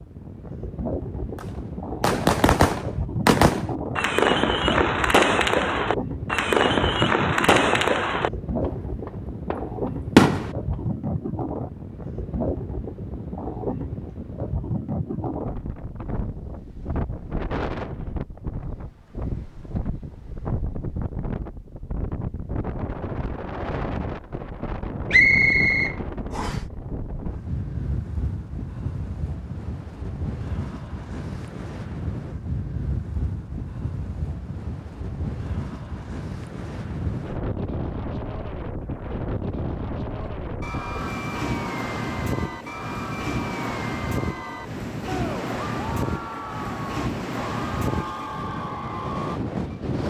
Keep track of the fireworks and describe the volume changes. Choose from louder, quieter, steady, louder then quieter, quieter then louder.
quieter.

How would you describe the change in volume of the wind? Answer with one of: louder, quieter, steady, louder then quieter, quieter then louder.
steady.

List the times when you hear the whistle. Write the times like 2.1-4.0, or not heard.
25.1-26.6.